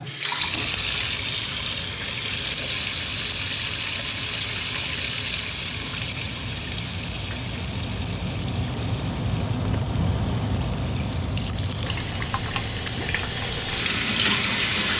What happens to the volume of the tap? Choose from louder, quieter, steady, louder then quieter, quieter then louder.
quieter then louder.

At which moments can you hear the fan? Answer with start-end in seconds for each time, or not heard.
0.2-14.9.